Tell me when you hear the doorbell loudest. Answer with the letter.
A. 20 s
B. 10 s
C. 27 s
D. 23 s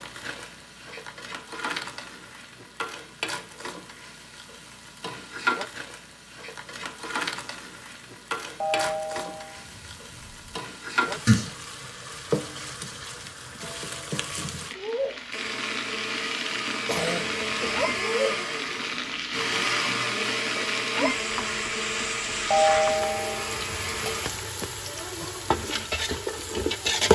D.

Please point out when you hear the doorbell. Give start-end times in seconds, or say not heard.
8.6-10.6, 22.5-23.9.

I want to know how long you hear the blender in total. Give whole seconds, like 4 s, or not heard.
9 s.